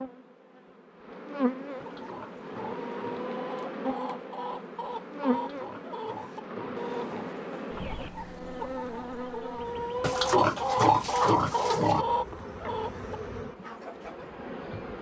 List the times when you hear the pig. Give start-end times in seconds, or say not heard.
1.8-3.2, 5.3-7.3, 10.0-12.1.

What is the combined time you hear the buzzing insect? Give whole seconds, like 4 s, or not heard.
15 s.